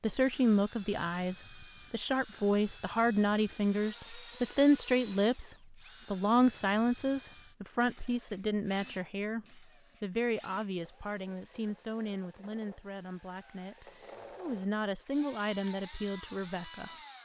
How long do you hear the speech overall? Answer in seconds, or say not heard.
17 s.